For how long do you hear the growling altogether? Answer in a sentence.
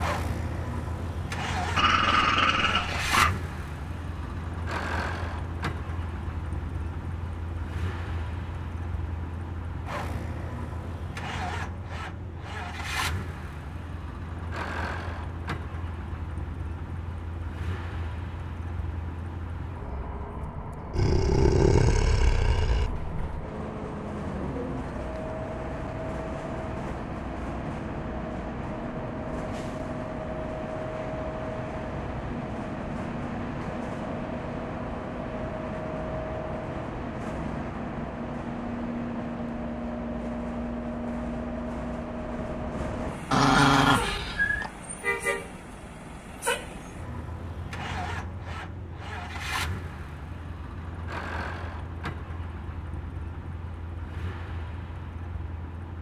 The growling can be heard for 5 seconds in total.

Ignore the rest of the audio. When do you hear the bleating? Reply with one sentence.
You can't hear the bleating here.